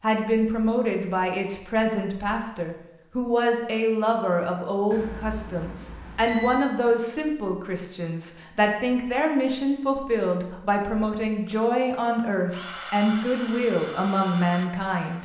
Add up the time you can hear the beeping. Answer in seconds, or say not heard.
2 s.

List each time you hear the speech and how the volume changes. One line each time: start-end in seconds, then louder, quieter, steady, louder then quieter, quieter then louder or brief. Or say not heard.
0.0-15.1 steady.